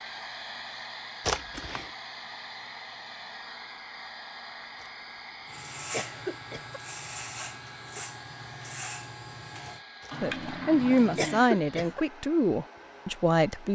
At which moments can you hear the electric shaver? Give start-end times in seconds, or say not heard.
5.5-9.8.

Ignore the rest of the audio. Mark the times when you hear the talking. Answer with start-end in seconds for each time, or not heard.
10.2-13.7.